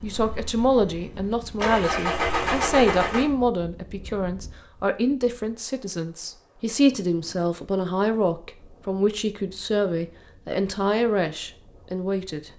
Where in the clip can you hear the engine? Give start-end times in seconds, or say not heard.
0.0-3.2.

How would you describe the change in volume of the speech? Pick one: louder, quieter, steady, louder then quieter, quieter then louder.
steady.